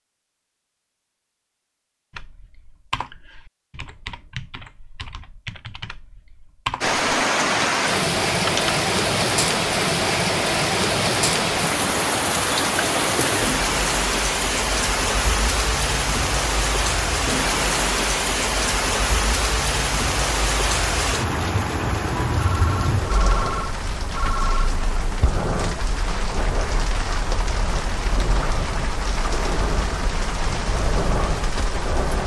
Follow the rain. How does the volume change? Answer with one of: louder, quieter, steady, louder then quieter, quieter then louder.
quieter.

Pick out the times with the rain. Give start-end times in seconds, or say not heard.
6.8-32.2.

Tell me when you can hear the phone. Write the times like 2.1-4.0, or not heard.
22.4-24.8.